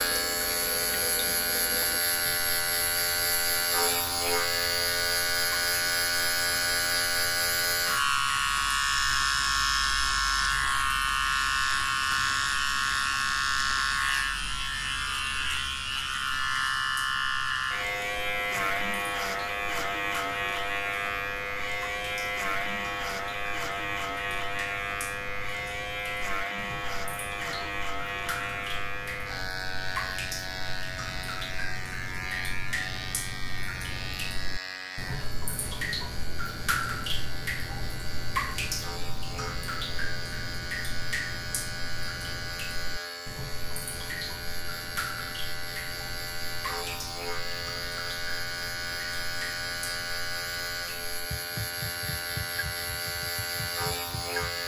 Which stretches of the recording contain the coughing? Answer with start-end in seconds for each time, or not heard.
not heard.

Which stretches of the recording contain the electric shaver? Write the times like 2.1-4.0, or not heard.
0.0-54.6.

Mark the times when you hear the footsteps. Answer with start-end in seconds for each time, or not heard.
not heard.